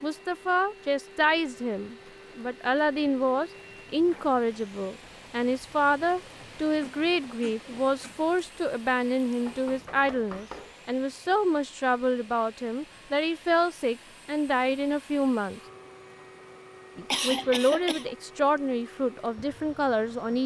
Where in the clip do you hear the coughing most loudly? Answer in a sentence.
The volume of the coughing peaks at 17 seconds.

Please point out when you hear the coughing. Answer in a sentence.
You can hear the coughing from 6.8 to 8.2 s and from 16.9 to 18.1 s.